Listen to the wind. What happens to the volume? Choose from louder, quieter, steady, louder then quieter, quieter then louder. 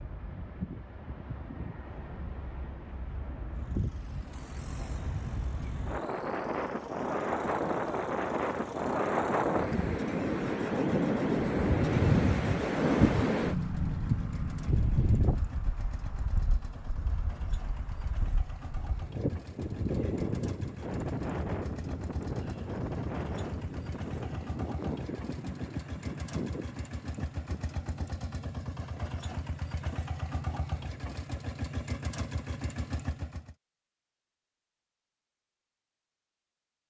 louder then quieter.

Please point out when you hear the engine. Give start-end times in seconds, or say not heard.
3.5-33.5.